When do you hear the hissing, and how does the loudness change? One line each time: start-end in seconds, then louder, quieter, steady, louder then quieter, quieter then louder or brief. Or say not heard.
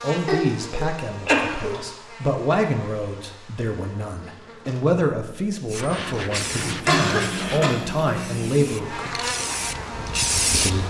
5.7-10.8 quieter then louder.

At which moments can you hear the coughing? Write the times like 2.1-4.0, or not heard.
0.2-1.8, 6.8-7.7.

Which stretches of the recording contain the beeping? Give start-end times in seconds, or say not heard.
not heard.